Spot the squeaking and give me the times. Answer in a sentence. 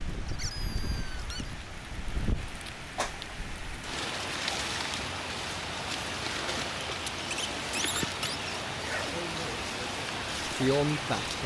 You can hear the squeaking from 0.2 to 1.5 s and from 7.0 to 8.4 s.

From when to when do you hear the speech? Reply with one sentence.
You can hear the speech from 9.1 to 11.4 s.